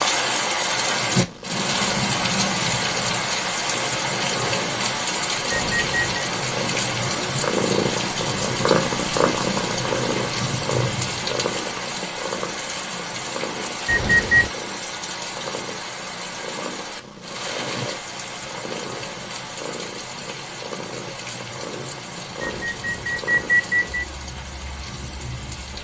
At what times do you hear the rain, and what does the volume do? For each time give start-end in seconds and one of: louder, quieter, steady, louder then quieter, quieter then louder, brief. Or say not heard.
0.0-25.7 quieter.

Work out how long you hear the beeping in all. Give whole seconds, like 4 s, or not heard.
3 s.